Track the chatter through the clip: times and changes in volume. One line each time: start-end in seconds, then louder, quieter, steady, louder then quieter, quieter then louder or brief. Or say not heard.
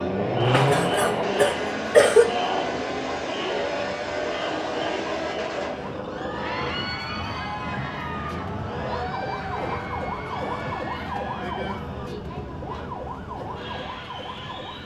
0.0-14.8 quieter.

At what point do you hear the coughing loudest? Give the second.
2 s.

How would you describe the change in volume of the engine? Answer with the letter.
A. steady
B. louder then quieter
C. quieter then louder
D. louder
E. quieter
E.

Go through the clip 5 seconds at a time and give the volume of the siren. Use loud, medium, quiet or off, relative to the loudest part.
medium, loud, loud.